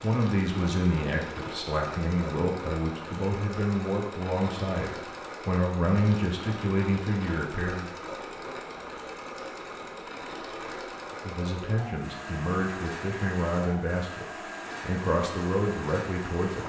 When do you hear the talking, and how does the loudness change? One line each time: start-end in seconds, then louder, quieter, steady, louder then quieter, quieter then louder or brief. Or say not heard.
0.0-7.9 steady
11.2-16.6 steady.